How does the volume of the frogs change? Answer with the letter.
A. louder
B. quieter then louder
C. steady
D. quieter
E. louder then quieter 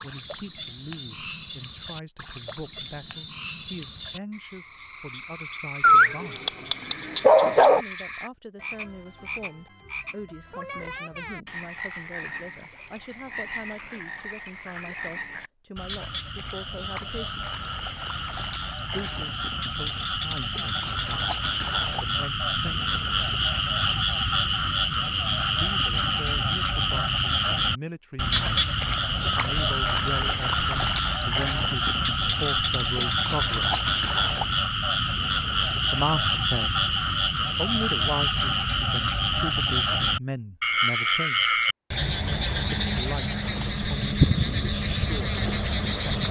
A.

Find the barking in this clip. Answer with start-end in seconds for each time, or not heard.
5.8-7.8.